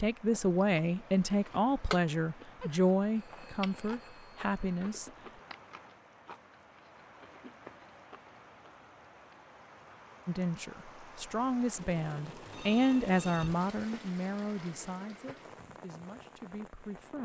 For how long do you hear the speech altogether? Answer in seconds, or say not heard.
12 s.